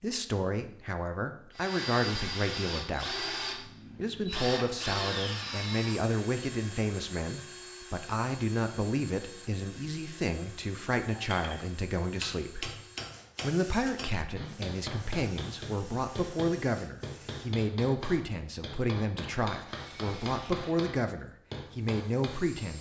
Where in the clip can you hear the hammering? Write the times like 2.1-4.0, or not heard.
11.1-22.7.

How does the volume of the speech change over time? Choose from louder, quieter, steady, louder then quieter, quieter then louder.
steady.